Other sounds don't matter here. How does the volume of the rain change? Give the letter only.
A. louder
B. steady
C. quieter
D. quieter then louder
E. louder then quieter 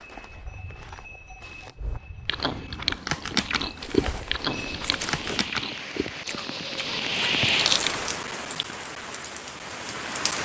E.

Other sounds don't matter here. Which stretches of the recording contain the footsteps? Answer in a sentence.
The footsteps can be heard from 0.0 to 5.4 s.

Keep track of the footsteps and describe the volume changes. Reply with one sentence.
The loudness of the footsteps goes up.